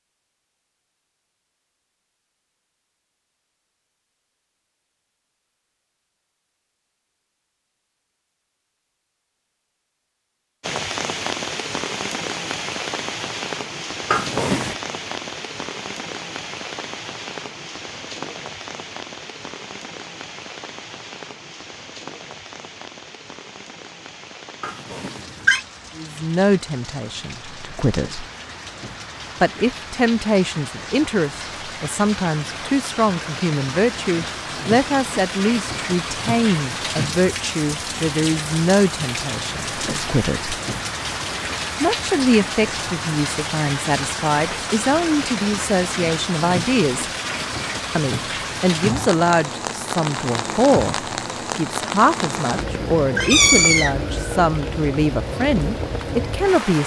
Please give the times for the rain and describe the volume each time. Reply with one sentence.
You can hear the rain from 10.6 to 56.8 s, getting quieter then louder.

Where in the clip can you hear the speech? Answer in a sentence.
The speech can be heard from 25.9 to 28.2 s, from 29.4 to 40.5 s, from 41.8 to 47.0 s and from 48.0 to 56.8 s.